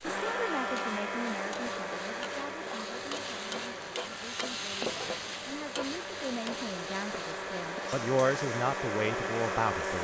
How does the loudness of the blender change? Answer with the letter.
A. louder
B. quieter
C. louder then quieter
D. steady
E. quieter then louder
E.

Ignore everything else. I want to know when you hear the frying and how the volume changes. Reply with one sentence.
You can hear the frying from 0.0 to 9.9 s, getting louder then quieter.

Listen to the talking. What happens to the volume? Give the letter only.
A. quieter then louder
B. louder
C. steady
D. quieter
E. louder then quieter
A.